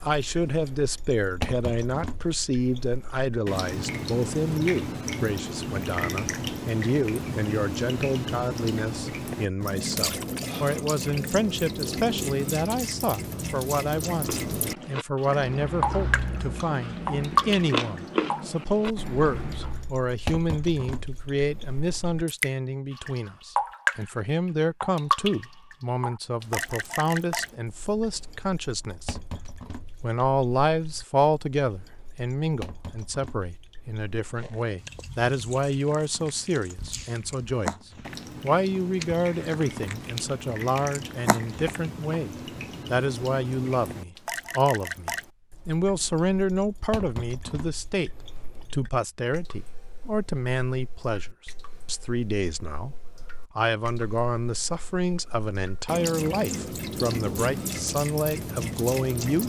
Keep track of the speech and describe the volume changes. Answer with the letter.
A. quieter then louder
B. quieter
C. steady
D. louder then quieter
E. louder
C.